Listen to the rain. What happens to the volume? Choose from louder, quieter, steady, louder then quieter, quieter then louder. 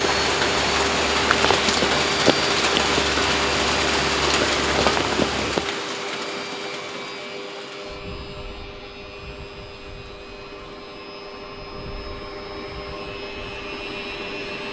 quieter.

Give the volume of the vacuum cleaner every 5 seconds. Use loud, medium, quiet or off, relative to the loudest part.
loud, medium, medium.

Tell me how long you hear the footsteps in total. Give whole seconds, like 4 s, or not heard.
6 s.